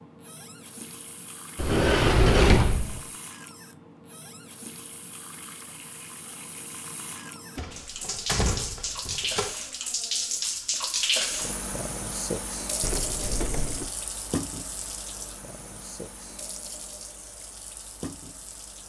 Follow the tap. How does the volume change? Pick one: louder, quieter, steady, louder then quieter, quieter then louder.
louder then quieter.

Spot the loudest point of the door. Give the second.
2 s.